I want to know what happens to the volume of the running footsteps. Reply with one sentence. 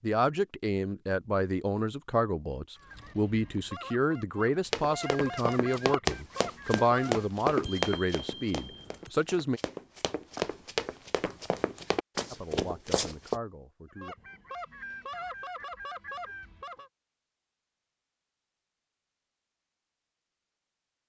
The volume of the running footsteps goes down, then up.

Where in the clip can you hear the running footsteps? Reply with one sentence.
The running footsteps can be heard from 4.7 to 13.4 s.